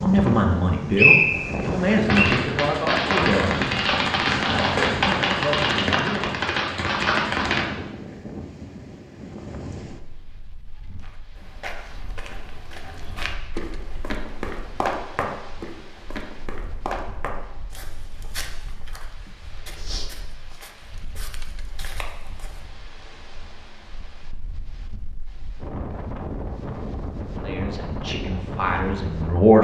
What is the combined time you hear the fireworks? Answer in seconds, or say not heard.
6 s.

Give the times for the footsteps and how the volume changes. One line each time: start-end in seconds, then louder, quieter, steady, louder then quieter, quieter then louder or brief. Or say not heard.
10.8-22.6 louder then quieter.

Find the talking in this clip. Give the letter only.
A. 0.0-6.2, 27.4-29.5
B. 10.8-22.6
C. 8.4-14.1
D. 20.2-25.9
A.